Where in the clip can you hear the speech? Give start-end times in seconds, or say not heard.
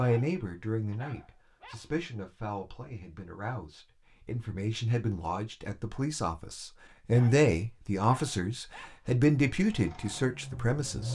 0.0-11.1.